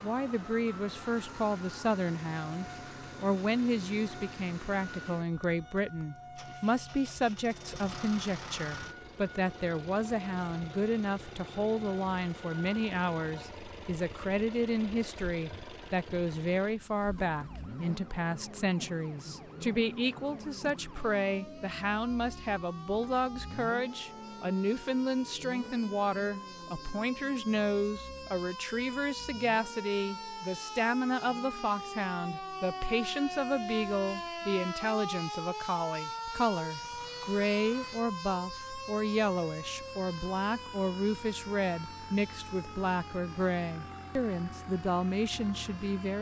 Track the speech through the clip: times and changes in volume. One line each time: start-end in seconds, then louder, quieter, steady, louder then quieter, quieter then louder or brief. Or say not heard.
0.0-46.1 steady.